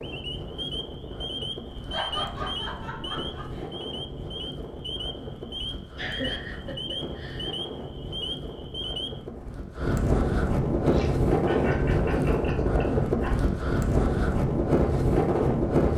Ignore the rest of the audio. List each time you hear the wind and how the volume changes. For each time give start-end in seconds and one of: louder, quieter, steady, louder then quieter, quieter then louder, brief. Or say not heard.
0.0-15.9 louder.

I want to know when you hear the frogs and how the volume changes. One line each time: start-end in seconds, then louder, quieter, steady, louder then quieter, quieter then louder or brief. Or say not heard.
0.0-9.2 steady.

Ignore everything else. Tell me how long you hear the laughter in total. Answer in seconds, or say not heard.
6 s.